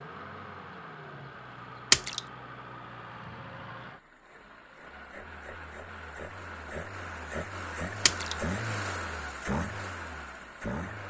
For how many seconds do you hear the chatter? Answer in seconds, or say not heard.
not heard.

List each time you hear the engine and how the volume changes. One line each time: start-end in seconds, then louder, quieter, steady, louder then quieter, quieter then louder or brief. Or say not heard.
0.0-11.0 louder.